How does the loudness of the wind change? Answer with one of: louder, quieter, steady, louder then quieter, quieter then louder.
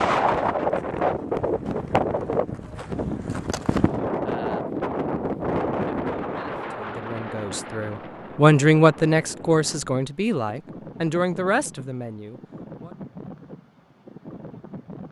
quieter.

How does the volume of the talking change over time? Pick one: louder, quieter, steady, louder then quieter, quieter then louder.
louder then quieter.